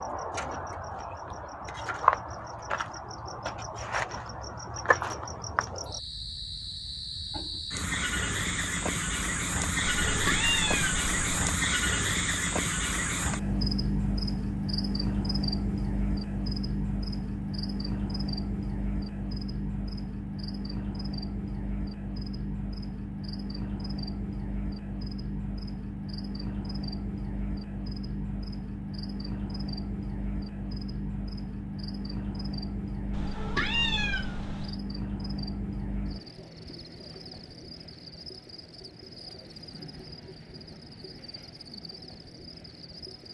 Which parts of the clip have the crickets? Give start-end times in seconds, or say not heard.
0.0-43.2.